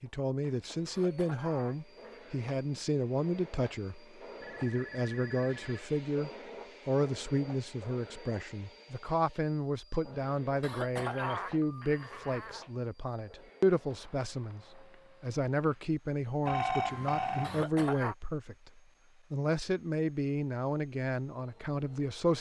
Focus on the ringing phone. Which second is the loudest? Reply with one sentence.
The loudest moment of the ringing phone is at 17 seconds.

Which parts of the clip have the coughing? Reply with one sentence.
You can hear the coughing from 0.8 to 2.2 s, from 10.6 to 12.7 s and from 17.4 to 18.1 s.